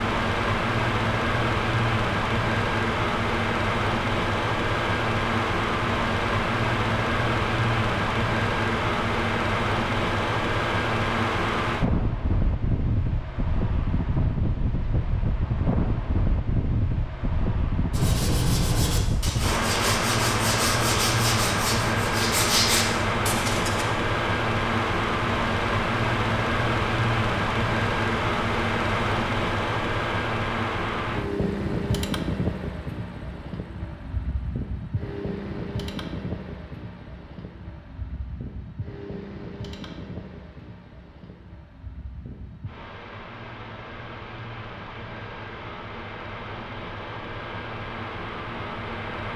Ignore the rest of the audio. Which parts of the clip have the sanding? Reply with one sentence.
You can hear the sanding from 17.9 to 23.9 s.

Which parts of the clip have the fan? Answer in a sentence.
The fan can be heard from 0.0 to 49.3 s.